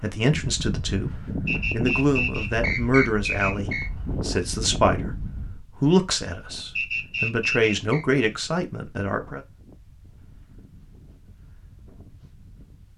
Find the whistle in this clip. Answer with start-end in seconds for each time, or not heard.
1.4-3.9, 6.8-8.1.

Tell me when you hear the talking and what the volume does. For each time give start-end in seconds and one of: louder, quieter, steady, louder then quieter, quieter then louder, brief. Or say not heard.
0.0-9.4 steady.